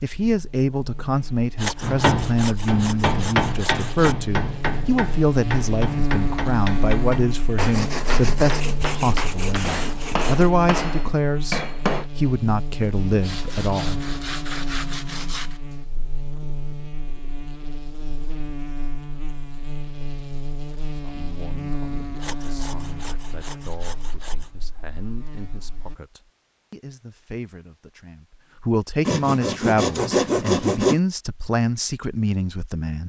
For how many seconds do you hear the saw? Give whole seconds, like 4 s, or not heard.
12 s.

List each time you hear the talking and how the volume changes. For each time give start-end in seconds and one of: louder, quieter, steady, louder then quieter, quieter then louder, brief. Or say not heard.
0.0-14.1 steady
20.9-33.0 louder.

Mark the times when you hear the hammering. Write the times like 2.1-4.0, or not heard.
1.8-12.1.